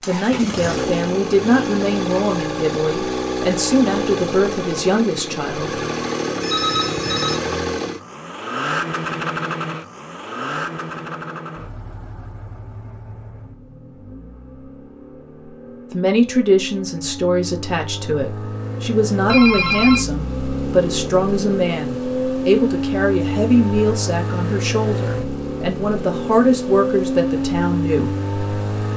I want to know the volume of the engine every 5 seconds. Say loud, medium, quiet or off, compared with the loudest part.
loud, loud, medium, medium, loud, loud.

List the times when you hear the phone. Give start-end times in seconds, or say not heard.
6.4-7.4, 19.2-20.1.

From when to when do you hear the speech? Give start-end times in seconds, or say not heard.
0.1-5.8, 15.9-28.1.